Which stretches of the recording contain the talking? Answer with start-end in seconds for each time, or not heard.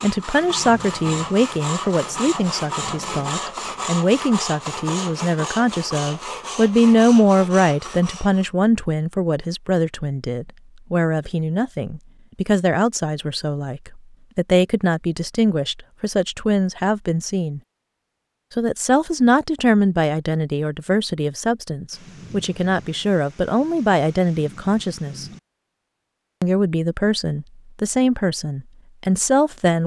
0.0-17.6, 18.6-25.2, 26.4-29.8.